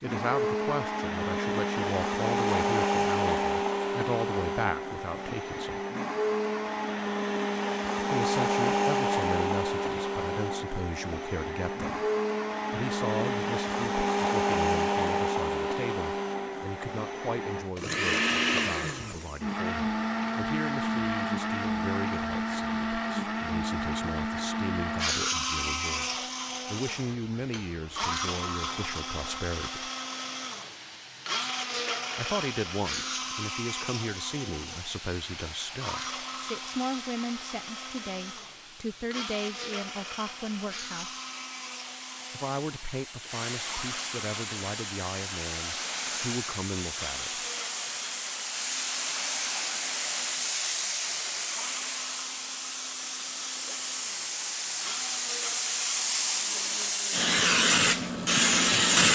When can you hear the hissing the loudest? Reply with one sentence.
The loudest moment of the hissing is at 59 seconds.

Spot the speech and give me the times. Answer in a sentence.
You can hear the speech from 0.0 to 5.8 s, from 8.0 to 11.9 s, from 12.7 to 29.9 s, from 32.1 to 41.1 s and from 42.3 to 47.5 s.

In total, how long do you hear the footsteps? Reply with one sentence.
The footsteps can't be heard in this clip.